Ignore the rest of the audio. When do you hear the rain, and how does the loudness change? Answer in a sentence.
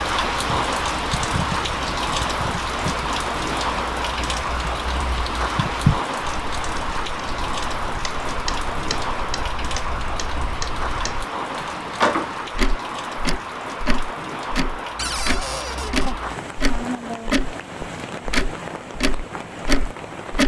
You can hear the rain from 0.0 to 20.4 s, getting quieter.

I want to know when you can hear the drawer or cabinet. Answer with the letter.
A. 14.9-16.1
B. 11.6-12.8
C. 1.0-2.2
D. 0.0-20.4
A.